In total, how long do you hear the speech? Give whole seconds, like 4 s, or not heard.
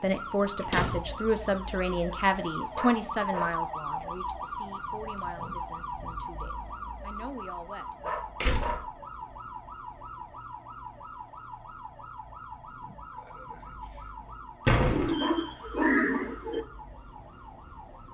8 s.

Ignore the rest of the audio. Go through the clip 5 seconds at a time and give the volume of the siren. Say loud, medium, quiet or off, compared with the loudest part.
loud, loud, medium, medium.